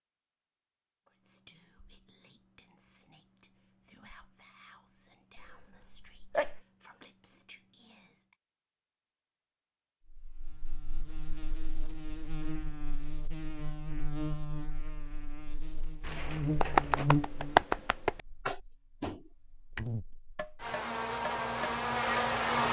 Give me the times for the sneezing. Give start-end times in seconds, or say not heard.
5.3-6.6.